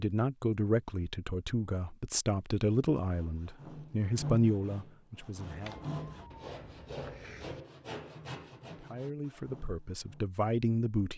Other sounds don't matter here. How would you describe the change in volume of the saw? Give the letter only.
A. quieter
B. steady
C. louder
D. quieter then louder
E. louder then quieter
A.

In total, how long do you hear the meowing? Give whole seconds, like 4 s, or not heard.
2 s.